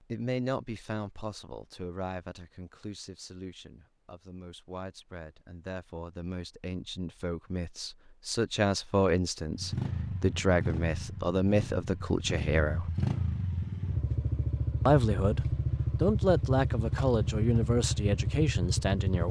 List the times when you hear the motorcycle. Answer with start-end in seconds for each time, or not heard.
9.4-19.2.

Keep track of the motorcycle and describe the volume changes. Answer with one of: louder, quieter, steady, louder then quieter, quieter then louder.
louder.